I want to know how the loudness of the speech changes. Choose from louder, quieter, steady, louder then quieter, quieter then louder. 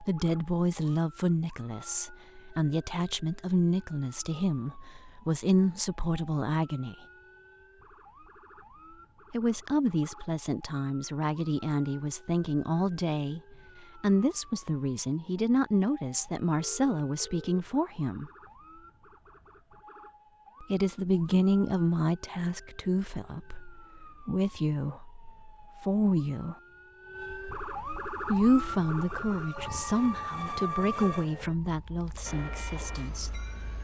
steady.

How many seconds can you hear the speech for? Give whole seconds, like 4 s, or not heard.
27 s.